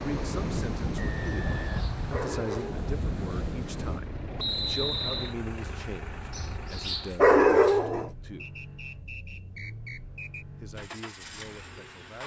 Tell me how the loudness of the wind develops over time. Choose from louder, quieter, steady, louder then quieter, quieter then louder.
quieter.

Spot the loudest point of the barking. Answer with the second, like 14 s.
7 s.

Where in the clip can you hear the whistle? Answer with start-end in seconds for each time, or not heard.
0.9-1.6, 4.3-5.3, 8.3-10.4.